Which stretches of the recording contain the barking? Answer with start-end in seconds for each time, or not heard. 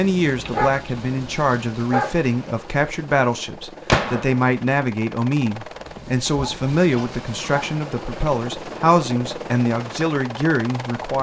0.2-2.1, 6.2-7.8.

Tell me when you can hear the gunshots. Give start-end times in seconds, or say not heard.
3.9-4.5.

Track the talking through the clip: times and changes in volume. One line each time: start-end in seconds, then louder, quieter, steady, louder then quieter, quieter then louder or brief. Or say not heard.
0.0-11.1 steady.